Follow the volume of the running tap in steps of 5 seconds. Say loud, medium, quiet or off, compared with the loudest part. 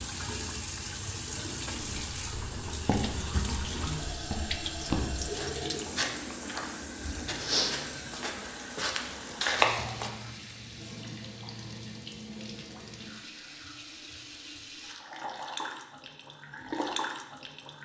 loud, loud, medium, loud.